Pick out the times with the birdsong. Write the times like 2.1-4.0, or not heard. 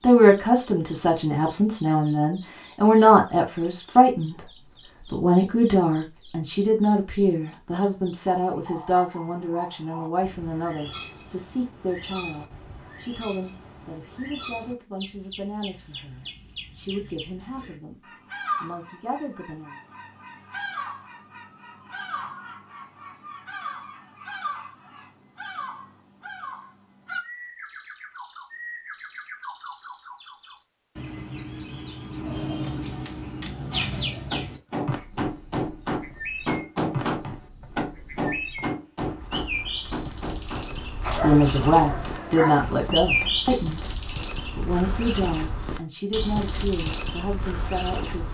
0.0-48.2.